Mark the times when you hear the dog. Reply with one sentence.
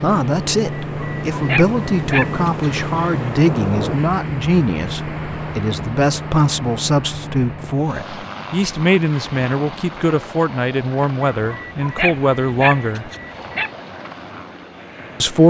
You can hear the dog from 0.8 to 2.7 s and from 11.3 to 13.7 s.